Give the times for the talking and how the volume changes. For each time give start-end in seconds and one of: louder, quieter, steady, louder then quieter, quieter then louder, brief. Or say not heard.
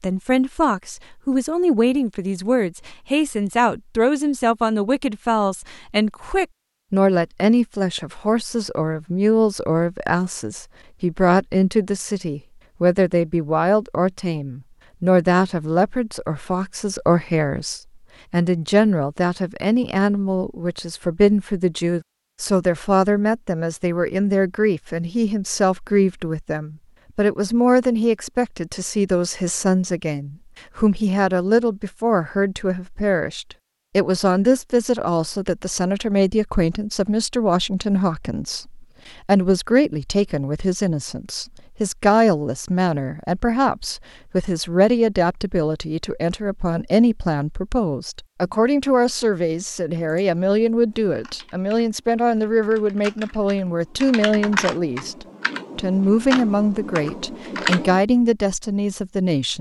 0.0-59.5 steady.